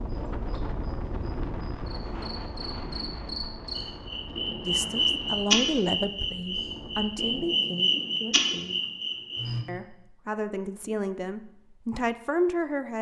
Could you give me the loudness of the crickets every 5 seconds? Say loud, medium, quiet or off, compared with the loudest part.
medium, loud, off.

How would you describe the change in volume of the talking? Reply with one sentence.
The loudness of the talking goes down, then up.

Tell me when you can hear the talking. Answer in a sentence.
You can hear the talking from 4.6 to 8.8 s and from 9.7 to 12.9 s.